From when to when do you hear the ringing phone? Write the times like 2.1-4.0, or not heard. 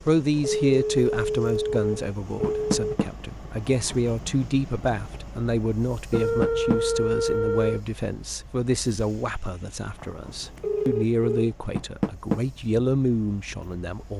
0.4-2.8, 6.1-7.8, 10.0-11.5.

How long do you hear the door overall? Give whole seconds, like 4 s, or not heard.
2 s.